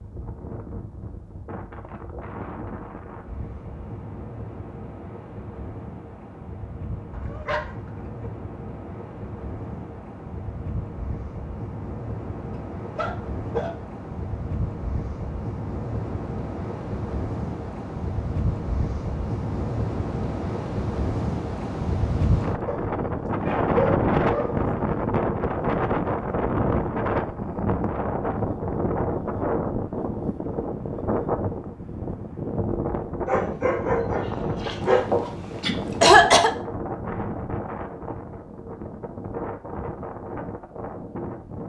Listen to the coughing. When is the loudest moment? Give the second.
36 s.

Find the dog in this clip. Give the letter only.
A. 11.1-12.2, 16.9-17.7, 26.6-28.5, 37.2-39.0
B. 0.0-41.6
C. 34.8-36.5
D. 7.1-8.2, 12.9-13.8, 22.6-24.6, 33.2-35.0
D.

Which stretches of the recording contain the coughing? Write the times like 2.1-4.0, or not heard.
34.8-36.5.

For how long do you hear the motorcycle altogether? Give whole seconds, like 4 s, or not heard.
not heard.